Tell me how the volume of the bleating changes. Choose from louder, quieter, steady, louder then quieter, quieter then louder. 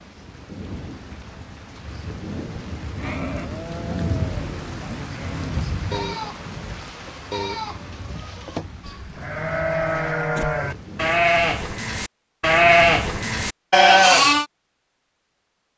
louder.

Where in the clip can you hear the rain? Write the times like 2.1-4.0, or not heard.
0.0-11.2.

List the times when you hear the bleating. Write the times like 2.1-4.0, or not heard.
3.0-14.4.